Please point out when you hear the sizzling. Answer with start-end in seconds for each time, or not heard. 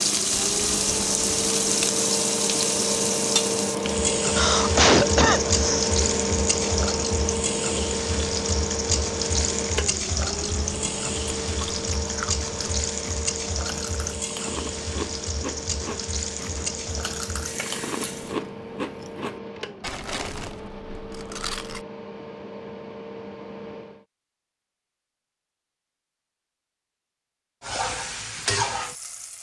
0.0-18.4, 27.6-29.3.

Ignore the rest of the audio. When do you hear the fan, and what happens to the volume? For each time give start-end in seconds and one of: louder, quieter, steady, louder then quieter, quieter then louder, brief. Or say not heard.
0.0-24.1 quieter.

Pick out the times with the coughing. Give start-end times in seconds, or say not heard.
4.2-6.0.